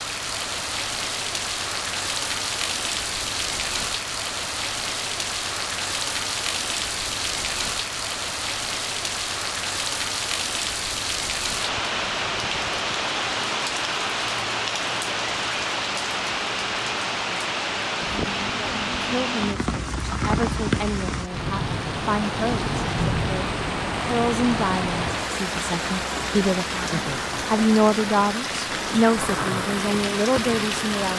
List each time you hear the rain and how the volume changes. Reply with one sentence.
The rain can be heard from 0.0 to 31.1 s, at a steady volume.